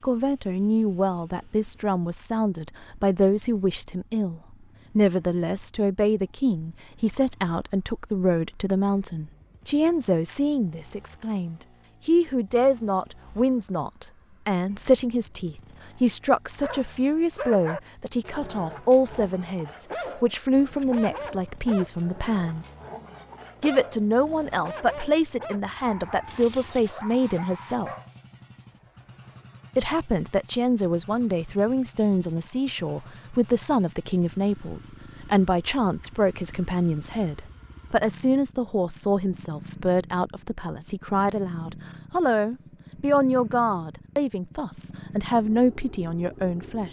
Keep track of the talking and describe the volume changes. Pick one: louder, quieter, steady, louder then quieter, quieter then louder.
steady.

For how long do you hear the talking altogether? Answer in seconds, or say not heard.
44 s.